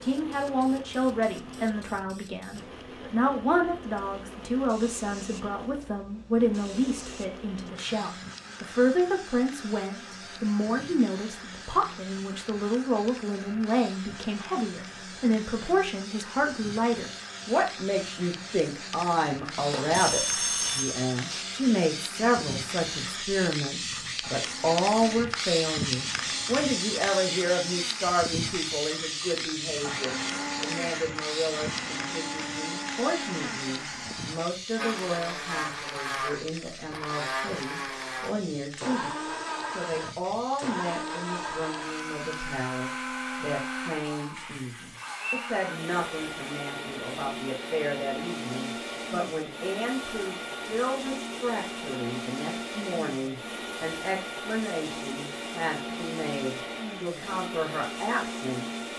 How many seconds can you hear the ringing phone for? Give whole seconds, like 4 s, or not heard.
2 s.